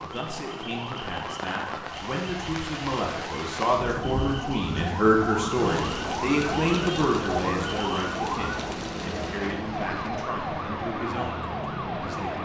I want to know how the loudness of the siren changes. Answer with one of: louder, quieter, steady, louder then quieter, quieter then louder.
louder.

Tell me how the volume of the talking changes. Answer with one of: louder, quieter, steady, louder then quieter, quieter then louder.
louder then quieter.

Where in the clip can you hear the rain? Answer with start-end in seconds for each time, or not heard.
0.0-10.3.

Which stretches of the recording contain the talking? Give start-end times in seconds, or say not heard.
0.0-12.4.